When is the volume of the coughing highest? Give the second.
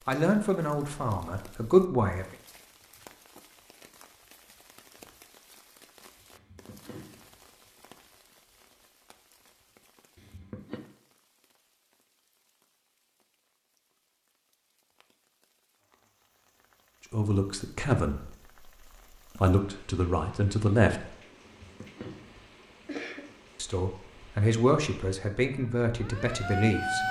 23 s.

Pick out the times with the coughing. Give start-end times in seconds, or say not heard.
6.3-7.3, 10.2-10.8, 21.4-23.4.